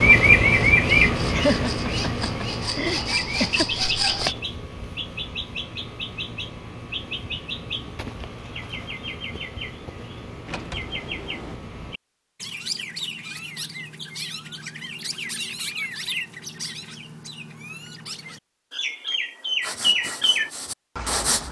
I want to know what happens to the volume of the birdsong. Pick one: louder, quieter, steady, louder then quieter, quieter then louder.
quieter then louder.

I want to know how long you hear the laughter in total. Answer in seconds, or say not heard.
2 s.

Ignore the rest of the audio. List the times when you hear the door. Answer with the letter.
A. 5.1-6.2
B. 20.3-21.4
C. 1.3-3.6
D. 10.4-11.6
D.